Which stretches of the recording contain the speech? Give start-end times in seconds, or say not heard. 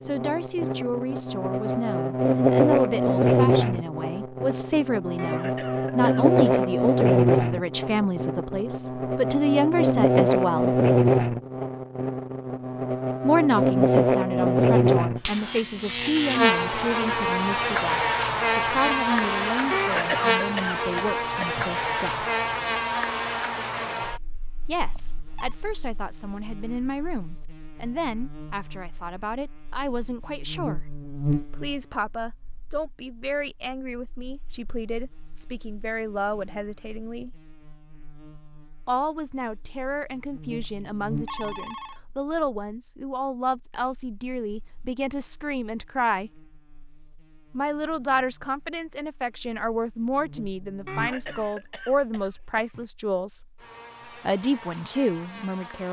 0.0-10.8, 13.2-22.2, 24.6-37.3, 38.9-46.4, 47.5-53.4, 54.2-55.8.